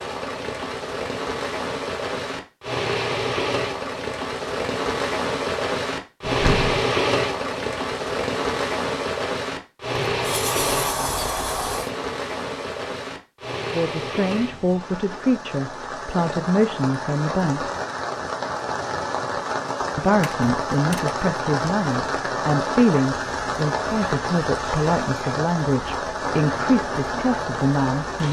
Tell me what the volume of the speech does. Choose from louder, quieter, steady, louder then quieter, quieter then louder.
steady.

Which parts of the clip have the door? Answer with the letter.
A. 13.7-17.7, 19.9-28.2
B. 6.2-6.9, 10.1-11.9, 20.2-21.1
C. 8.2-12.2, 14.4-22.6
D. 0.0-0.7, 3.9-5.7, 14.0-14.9
B.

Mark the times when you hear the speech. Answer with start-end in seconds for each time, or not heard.
13.7-17.7, 19.9-28.2.